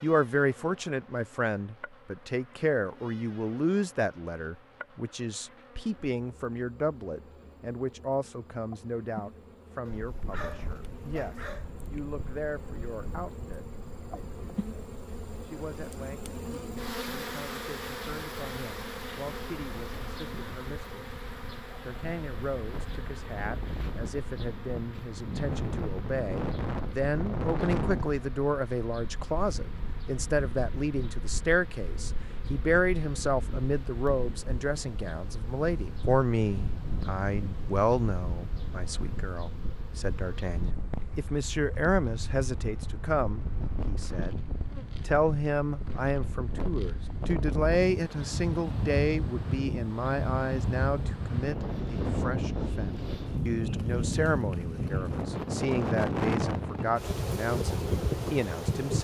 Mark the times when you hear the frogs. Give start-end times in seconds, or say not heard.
not heard.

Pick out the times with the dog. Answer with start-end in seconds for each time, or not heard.
9.8-11.7.